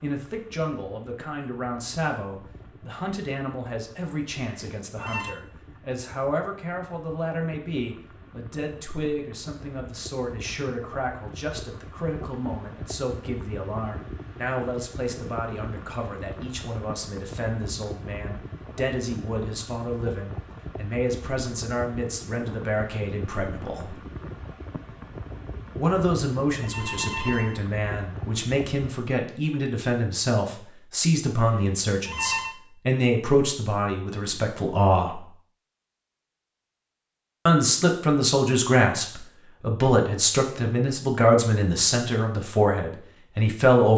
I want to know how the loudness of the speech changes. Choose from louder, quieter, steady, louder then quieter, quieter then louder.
louder.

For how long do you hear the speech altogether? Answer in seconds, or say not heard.
40 s.